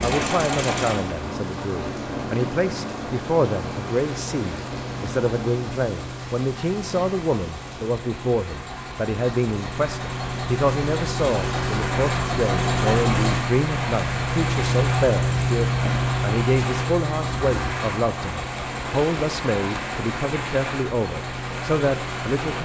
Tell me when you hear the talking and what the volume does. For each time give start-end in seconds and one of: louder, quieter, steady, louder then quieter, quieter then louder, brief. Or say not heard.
0.0-22.6 steady.